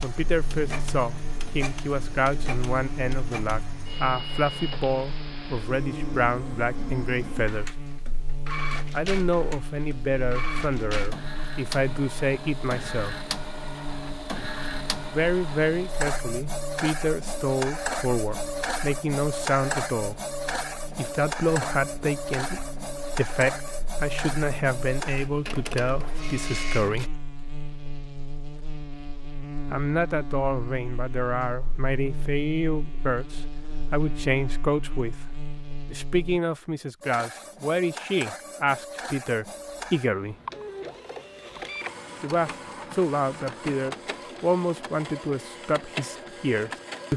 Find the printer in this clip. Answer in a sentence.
The printer can be heard from 0.0 to 27.1 s and from 37.0 to 47.1 s.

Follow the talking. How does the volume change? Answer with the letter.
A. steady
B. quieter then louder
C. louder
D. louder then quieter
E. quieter
A.